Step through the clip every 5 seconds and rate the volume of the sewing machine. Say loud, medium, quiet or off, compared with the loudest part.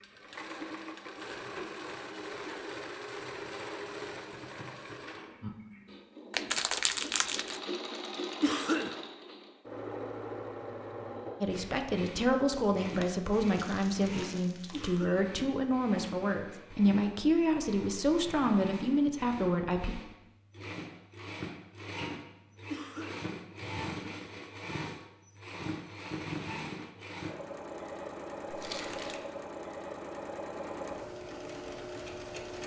loud, loud, loud, medium, loud, loud, loud.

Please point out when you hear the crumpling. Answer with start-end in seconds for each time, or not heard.
6.3-7.6, 12.5-15.1, 28.5-29.2.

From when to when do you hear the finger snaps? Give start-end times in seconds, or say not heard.
not heard.